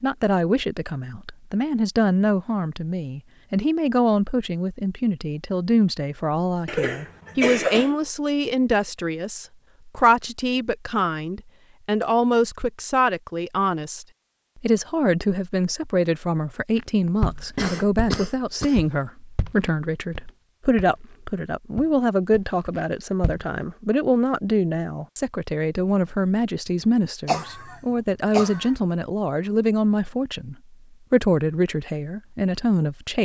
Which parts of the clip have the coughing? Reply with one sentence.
You can hear the coughing from 6.7 to 8.0 s, from 17.4 to 18.8 s and from 27.2 to 28.8 s.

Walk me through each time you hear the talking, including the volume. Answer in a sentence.
You can hear the talking from 0.0 to 33.2 s, at a steady volume.